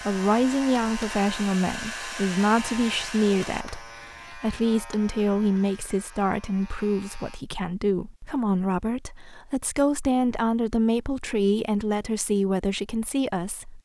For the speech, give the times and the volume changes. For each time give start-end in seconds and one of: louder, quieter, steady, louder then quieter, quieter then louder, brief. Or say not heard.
0.0-13.7 steady.